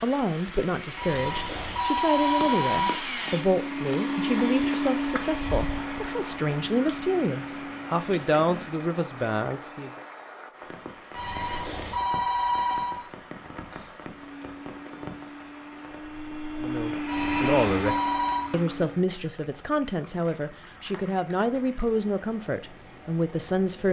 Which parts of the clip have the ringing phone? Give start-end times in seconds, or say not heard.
0.9-2.9, 11.1-13.0, 17.1-18.4.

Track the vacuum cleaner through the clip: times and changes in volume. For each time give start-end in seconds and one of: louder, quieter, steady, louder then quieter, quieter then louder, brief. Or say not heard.
0.0-10.2 louder then quieter
14.1-19.1 louder then quieter.